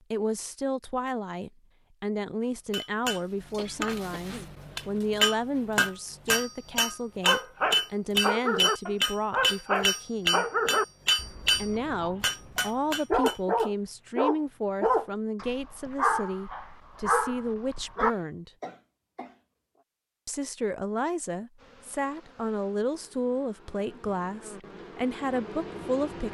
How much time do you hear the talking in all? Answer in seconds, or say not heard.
23 s.